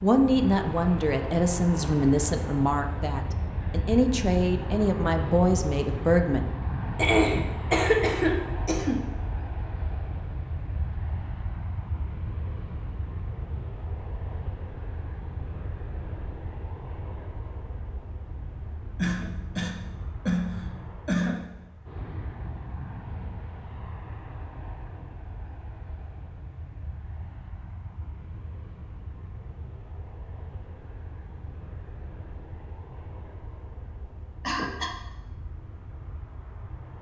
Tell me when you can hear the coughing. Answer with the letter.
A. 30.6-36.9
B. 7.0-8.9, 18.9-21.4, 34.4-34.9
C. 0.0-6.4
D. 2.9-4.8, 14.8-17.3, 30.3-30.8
B.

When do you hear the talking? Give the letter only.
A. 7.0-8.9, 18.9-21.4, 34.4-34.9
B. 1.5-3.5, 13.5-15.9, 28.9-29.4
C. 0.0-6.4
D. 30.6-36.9
C.